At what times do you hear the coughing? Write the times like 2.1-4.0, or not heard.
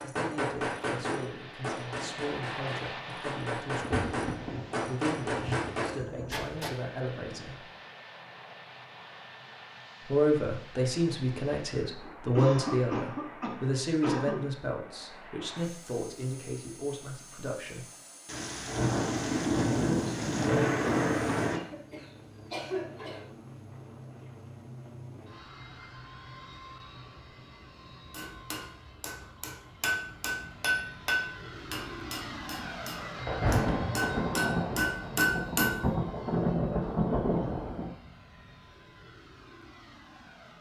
12.1-14.5, 21.5-23.2.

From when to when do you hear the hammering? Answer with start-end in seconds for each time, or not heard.
0.0-6.8, 28.1-35.8.